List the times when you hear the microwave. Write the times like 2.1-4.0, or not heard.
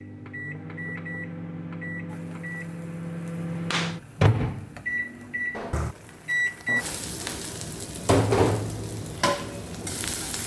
0.0-6.8.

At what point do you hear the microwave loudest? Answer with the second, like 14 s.
4 s.